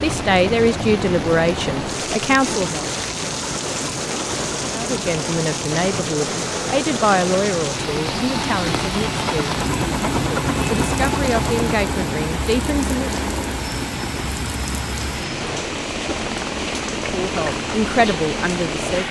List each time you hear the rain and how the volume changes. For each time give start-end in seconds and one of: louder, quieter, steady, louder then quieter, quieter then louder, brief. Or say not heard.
0.0-19.0 steady.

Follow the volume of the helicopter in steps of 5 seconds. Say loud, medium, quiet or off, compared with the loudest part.
medium, loud, loud, medium.